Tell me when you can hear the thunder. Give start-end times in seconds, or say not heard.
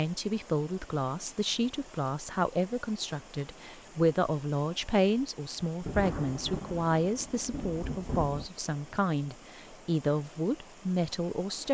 5.8-8.5.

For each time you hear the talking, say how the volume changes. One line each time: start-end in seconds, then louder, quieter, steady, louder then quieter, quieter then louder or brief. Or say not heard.
0.0-11.7 steady.